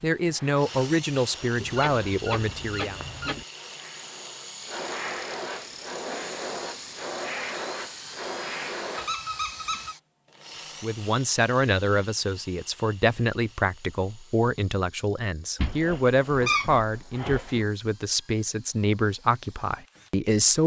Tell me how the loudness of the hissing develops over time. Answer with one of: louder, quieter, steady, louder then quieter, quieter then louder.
louder.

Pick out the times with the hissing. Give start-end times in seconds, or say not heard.
0.0-9.2.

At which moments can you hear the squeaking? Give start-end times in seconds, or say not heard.
1.6-3.5, 8.9-9.9, 15.6-17.6.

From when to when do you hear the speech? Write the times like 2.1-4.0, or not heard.
0.0-3.0, 10.8-20.6.